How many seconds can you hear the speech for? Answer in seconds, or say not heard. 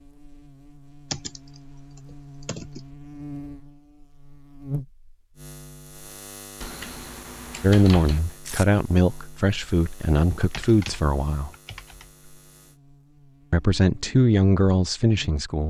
6 s.